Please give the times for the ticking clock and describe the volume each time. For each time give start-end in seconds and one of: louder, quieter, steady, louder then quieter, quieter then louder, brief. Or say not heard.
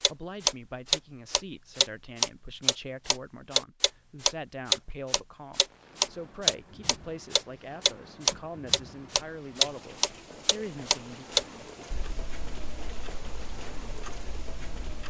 0.0-15.0 quieter.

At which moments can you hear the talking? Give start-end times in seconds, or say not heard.
0.0-11.2.